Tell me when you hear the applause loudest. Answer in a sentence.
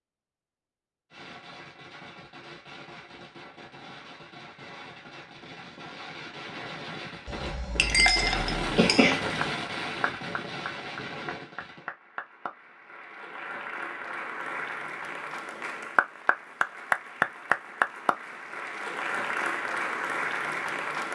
The volume of the applause peaks at 17 seconds.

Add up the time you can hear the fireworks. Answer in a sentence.
You can hear the fireworks for 11 seconds altogether.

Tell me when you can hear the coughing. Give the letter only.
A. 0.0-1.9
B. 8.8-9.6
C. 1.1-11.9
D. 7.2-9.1
B.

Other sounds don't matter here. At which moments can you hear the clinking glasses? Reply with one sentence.
The clinking glasses can be heard from 7.2 to 9.1 s.